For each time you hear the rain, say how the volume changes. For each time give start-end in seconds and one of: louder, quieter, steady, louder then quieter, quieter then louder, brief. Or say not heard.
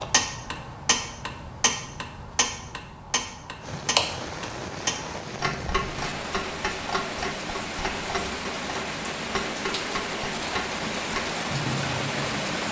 3.5-12.6 louder.